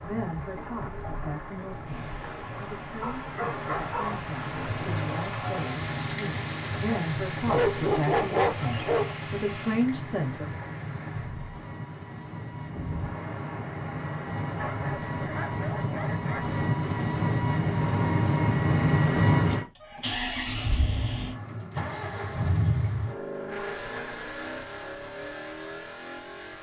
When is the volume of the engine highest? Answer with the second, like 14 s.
19 s.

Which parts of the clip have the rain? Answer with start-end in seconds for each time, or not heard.
0.0-15.3.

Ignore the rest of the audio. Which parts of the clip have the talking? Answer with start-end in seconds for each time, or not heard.
0.0-10.6.